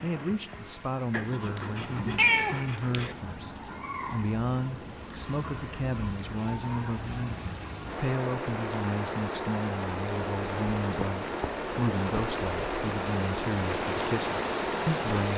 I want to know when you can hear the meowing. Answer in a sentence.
You can hear the meowing from 1.1 to 3.1 s.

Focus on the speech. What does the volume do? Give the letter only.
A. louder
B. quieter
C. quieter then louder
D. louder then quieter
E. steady
E.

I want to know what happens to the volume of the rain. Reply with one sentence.
The volume of the rain goes up.